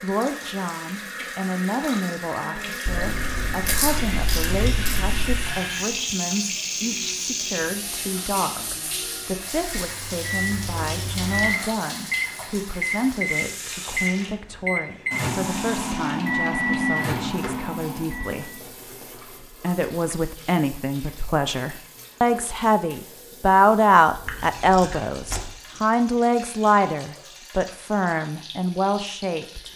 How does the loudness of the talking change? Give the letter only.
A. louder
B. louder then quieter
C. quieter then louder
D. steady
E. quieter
A.